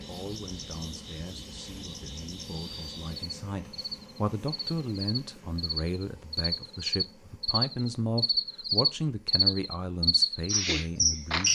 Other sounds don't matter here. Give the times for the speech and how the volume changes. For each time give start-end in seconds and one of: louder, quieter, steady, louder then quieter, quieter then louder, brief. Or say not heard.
0.1-11.5 louder.